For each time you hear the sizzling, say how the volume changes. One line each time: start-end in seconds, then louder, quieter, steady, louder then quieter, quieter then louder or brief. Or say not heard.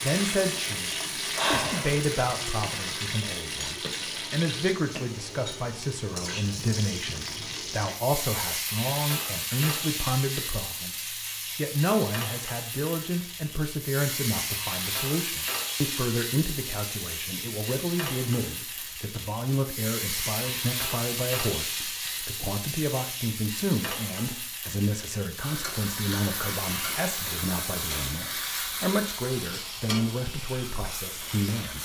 0.0-31.8 steady.